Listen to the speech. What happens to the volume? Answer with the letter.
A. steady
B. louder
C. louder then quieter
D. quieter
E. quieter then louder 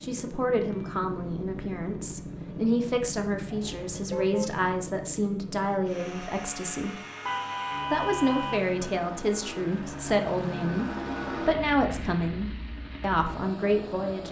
A.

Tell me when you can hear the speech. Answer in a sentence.
The speech can be heard from 0.0 to 7.0 s and from 7.9 to 14.2 s.